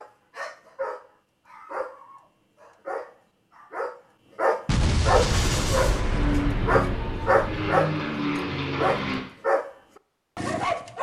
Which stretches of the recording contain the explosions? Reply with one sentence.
You can hear the explosions from 4.7 to 7.5 s.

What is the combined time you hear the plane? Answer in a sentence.
The plane can be heard for 4 seconds in total.